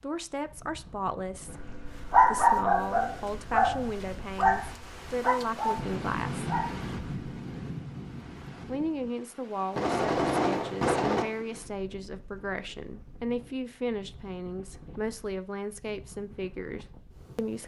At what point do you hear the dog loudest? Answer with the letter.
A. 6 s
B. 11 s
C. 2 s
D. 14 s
C.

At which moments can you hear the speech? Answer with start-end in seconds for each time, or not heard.
0.0-1.6, 2.2-6.5, 8.7-17.6.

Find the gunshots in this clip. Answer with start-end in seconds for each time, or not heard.
9.7-11.2.